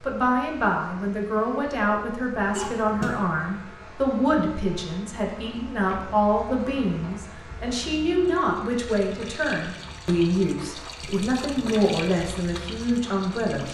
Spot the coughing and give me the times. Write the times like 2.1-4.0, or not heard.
2.5-3.2.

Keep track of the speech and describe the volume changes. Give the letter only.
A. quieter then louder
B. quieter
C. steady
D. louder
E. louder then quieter
C.